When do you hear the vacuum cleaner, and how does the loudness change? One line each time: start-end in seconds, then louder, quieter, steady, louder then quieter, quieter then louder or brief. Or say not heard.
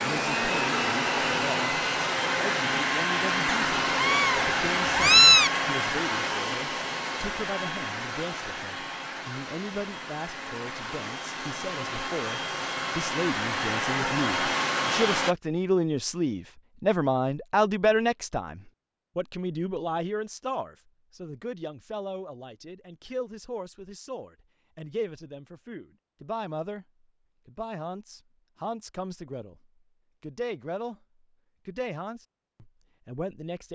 0.0-15.3 quieter then louder.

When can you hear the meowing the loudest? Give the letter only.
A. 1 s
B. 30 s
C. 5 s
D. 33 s
C.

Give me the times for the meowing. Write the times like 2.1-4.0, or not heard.
3.5-5.5.